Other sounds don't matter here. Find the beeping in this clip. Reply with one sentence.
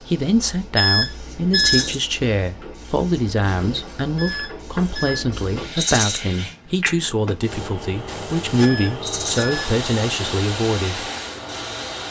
The beeping can be heard from 0.8 to 1.9 s, from 4.2 to 5.2 s and from 8.6 to 9.6 s.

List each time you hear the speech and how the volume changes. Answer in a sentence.
You can hear the speech from 0.0 to 11.1 s, at a steady volume.